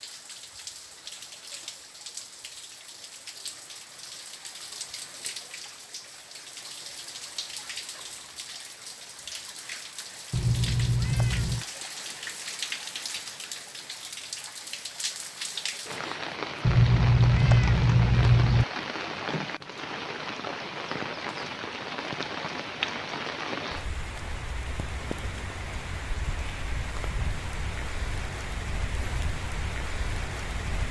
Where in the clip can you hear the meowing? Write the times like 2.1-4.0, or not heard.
10.3-11.7, 16.6-18.6.